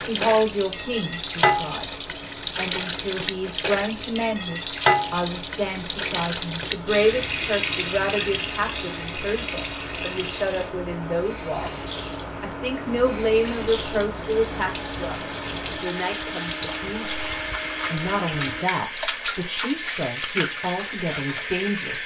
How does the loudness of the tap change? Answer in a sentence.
The volume of the tap goes down, then up.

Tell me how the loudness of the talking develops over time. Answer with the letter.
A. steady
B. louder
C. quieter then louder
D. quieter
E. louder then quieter
A.